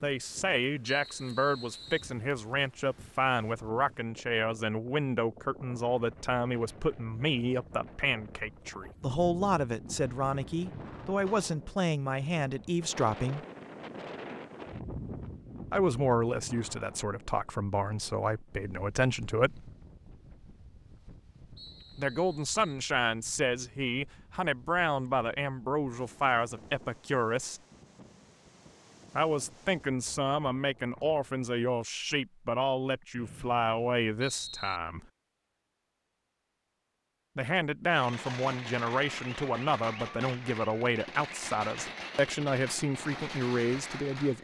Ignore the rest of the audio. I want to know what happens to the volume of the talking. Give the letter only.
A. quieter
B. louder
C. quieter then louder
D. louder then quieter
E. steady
E.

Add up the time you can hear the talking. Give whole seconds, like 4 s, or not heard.
36 s.